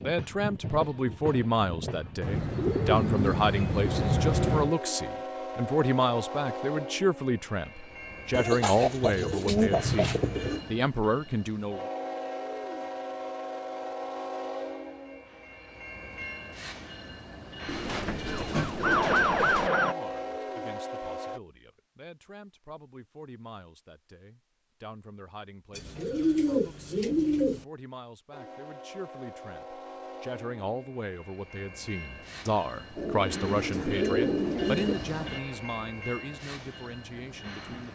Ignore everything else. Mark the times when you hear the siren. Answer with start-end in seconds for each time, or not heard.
18.2-19.9.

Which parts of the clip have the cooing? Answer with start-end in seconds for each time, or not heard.
2.2-4.8, 8.3-10.6, 17.6-19.7, 25.8-27.6, 33.0-35.0.